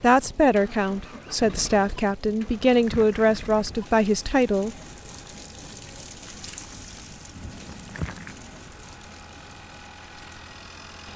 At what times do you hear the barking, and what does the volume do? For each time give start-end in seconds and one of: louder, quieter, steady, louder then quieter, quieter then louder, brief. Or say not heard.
not heard.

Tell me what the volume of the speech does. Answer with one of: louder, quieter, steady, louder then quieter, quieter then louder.
steady.